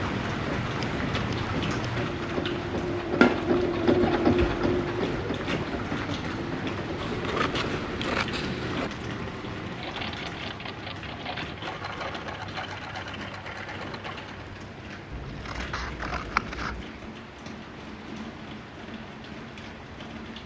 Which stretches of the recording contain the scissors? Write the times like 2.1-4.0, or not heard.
0.6-2.0, 7.0-8.9, 15.1-16.9.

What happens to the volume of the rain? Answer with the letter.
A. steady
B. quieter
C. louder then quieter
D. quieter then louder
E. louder
B.